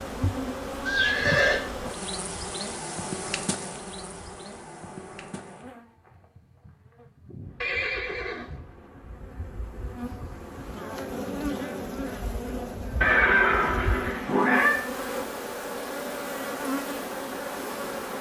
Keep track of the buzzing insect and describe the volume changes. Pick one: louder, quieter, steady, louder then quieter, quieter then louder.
quieter then louder.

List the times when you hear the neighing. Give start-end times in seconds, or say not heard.
0.8-1.6, 7.6-8.6, 13.0-14.8.